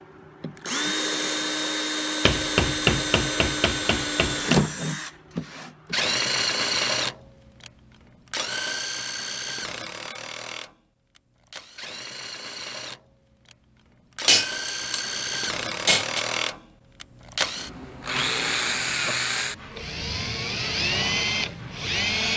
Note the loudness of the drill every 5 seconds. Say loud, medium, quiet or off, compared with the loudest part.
loud, loud, medium, loud, loud.